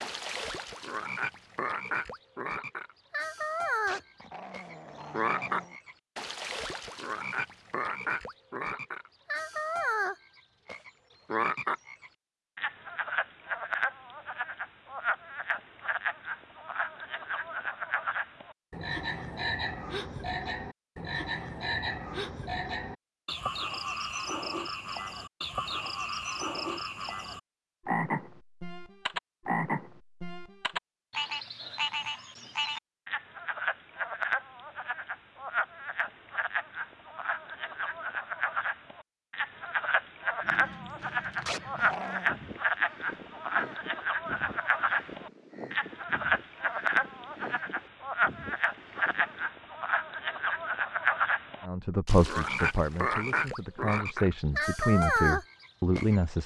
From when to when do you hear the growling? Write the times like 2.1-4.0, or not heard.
3.9-5.8, 41.5-42.4.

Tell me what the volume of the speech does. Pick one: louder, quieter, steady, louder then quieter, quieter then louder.
quieter then louder.